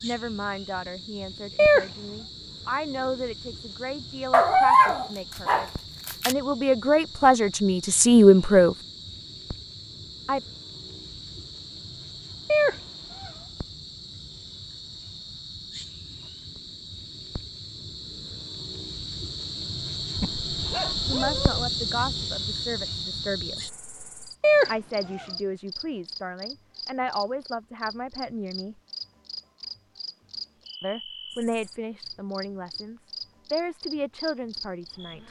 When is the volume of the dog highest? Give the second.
5 s.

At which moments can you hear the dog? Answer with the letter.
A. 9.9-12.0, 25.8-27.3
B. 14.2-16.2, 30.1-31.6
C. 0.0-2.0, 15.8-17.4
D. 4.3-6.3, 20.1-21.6
D.